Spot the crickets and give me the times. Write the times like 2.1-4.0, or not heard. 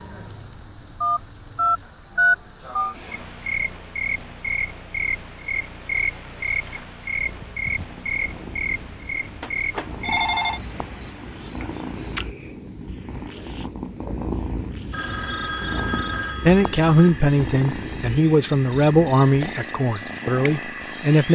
0.0-21.3.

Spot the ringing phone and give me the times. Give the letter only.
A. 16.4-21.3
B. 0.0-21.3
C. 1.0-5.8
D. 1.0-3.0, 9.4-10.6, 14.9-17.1
D.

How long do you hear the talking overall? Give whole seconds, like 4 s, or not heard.
5 s.